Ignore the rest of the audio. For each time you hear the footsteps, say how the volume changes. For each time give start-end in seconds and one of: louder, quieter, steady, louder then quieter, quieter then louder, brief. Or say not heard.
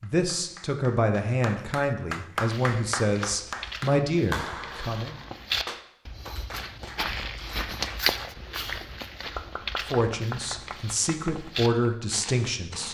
2.4-12.9 louder then quieter.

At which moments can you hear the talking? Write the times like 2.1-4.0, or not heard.
0.0-5.2, 9.9-12.9.